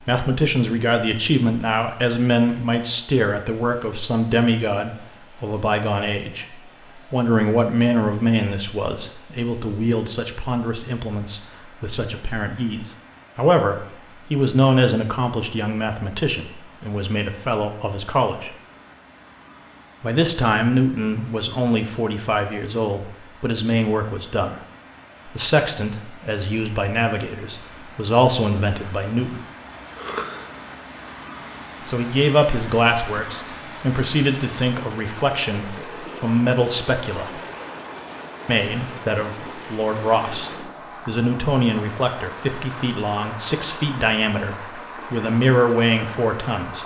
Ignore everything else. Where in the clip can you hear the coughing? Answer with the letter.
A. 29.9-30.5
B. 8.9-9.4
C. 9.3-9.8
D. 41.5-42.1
A.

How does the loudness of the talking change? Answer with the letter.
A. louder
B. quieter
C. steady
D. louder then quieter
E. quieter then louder
C.